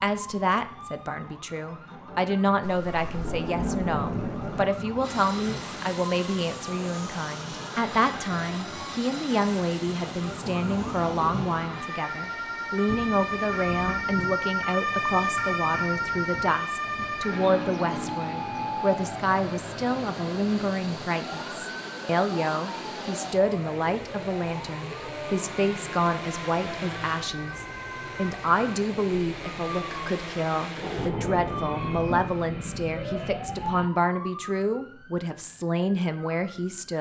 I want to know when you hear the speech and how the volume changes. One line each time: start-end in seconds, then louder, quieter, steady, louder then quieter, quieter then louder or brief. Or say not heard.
0.0-36.9 steady.